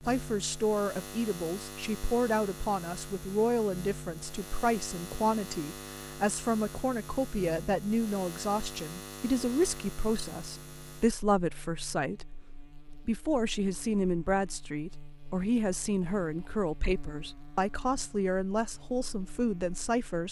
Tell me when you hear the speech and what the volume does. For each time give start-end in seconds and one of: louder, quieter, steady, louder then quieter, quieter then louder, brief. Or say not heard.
0.1-20.2 steady.